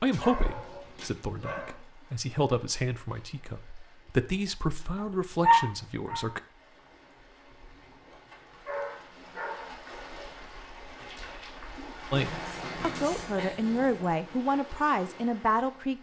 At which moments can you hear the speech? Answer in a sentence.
The speech can be heard from 0.0 to 6.4 s and from 12.1 to 15.9 s.